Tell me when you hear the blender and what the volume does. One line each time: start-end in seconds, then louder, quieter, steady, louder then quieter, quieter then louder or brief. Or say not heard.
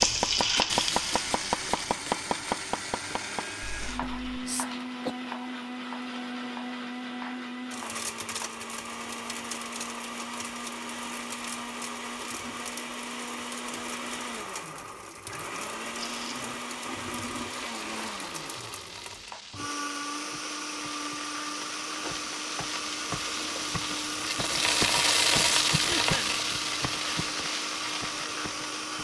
0.0-28.9 steady.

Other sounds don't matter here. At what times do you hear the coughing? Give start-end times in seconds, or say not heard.
3.8-5.2, 25.7-26.4.